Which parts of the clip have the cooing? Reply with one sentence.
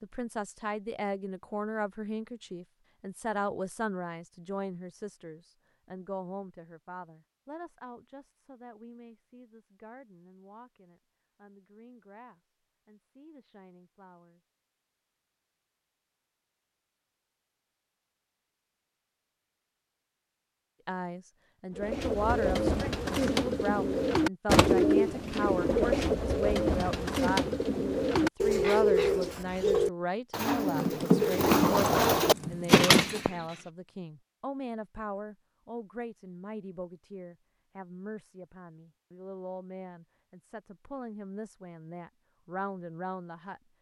You can hear the cooing from 21.8 to 33.5 s.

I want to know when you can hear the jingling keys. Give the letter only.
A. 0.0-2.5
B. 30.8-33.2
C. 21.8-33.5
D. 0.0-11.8
B.